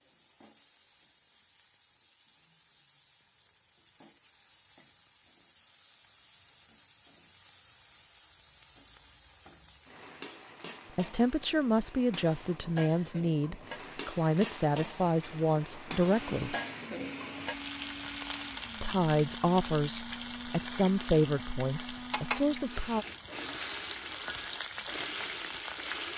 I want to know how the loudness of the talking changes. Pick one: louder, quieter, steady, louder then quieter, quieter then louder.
steady.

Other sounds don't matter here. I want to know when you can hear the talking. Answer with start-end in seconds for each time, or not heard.
10.9-16.6, 18.8-23.1.